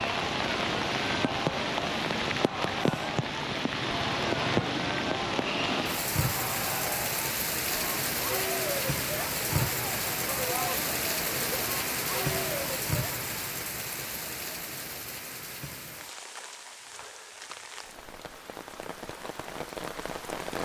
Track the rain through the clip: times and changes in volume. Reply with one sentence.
The rain can be heard from 0.0 to 20.6 s, getting quieter.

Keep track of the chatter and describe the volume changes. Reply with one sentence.
The volume of the chatter stays about the same.